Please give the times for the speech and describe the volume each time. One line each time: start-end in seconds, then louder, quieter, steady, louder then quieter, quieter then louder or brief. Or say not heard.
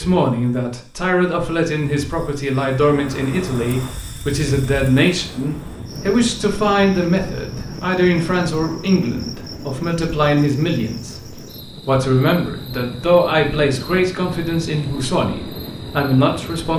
0.0-16.7 steady.